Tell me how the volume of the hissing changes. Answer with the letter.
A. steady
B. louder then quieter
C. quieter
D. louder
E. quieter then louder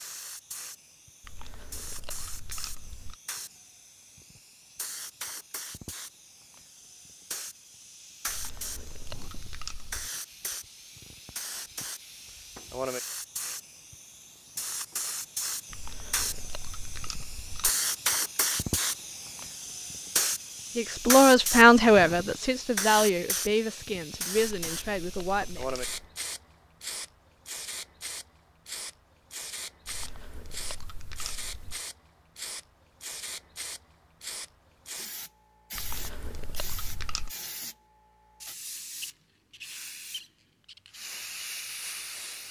B.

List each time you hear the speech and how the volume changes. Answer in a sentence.
The speech can be heard from 20.8 to 25.6 s, getting quieter.